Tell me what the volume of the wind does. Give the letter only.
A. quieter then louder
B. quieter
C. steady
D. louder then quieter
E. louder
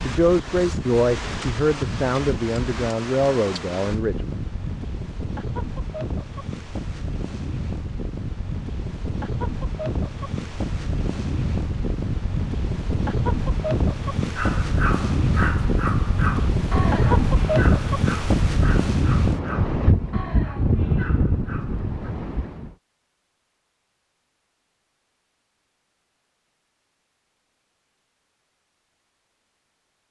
E.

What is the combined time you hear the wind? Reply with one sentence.
The wind can be heard for 23 seconds in total.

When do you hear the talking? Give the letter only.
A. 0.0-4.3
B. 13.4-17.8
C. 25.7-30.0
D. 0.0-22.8
A.